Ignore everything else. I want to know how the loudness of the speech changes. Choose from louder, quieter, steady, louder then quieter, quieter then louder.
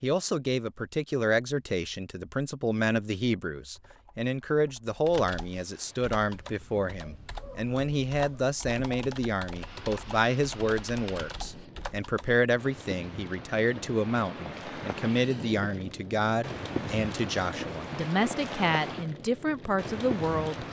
steady.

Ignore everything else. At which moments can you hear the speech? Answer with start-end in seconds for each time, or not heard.
0.0-20.6.